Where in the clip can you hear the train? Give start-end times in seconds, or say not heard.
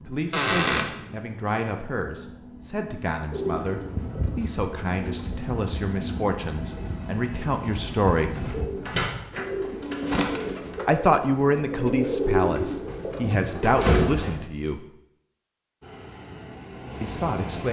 0.0-8.7, 15.8-17.6.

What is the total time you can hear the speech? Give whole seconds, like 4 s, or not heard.
13 s.